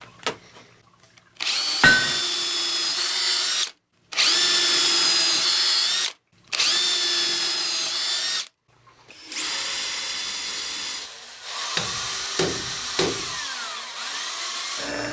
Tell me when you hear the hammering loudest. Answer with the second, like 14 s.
2 s.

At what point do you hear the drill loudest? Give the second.
5 s.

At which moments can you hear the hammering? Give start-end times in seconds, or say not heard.
1.8-2.2, 11.8-13.3.